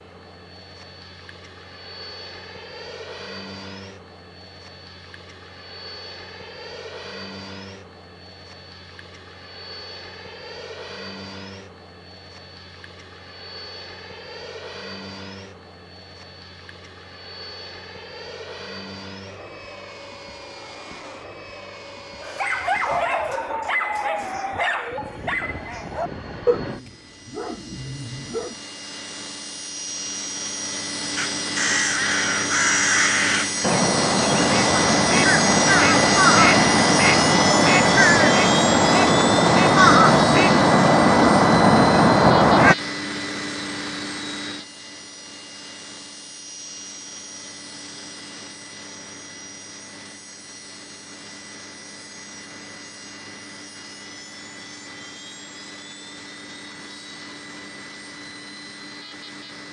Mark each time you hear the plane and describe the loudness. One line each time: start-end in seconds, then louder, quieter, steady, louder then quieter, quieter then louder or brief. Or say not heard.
0.0-59.6 louder then quieter.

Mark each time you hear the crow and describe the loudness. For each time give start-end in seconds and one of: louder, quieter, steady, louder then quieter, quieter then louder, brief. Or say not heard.
31.1-42.8 louder.